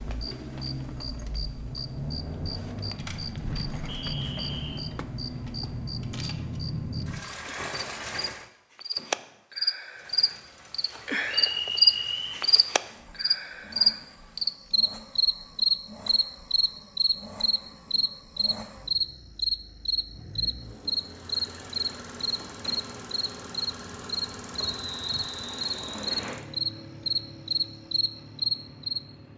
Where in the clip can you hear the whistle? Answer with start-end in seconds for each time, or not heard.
3.9-4.8, 11.2-12.4, 24.6-26.4.